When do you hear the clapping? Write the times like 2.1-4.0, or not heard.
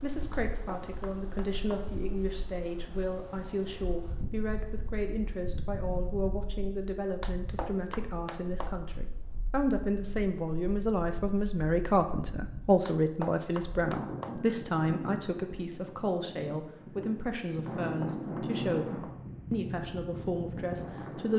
0.3-1.9, 7.2-8.8, 12.8-14.4, 17.6-19.2.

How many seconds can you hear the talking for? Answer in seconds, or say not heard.
21 s.